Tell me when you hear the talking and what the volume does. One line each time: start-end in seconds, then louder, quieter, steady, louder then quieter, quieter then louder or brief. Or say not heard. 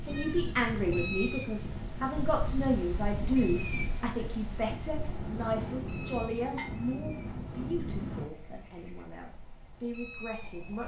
0.0-10.8 quieter.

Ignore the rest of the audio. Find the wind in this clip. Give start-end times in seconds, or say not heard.
0.0-8.2.